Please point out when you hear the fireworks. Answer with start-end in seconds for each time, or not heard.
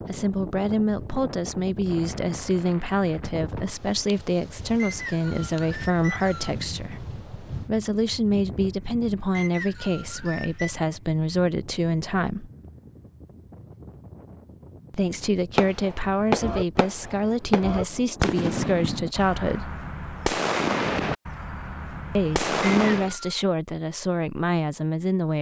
15.6-23.1.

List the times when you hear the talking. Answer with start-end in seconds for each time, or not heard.
0.1-12.5, 14.9-19.8, 22.1-25.3.